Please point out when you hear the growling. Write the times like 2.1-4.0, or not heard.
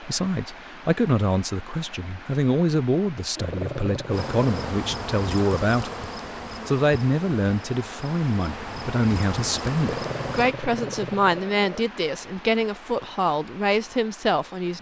3.4-4.8, 9.8-11.8.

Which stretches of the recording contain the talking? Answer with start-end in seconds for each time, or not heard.
0.0-14.7.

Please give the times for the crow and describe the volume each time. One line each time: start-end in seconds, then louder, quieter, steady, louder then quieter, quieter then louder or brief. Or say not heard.
not heard.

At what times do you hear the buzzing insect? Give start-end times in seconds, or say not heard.
4.1-10.6.